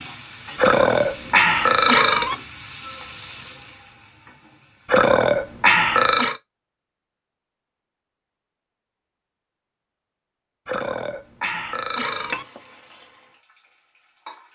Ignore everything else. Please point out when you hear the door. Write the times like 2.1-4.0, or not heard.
not heard.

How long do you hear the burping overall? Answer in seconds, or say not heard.
5 s.